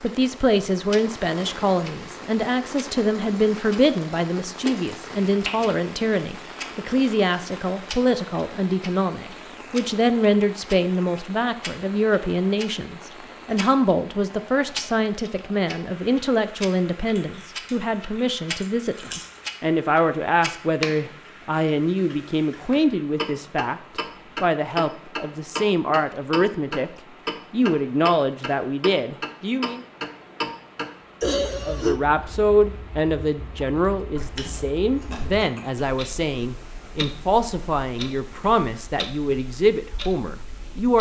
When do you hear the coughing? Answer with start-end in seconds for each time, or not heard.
31.2-32.0.